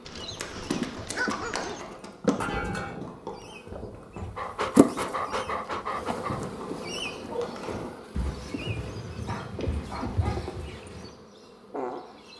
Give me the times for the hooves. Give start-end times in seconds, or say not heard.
0.1-11.1.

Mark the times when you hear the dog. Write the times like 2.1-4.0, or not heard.
0.1-1.9, 4.3-6.5, 9.2-10.5.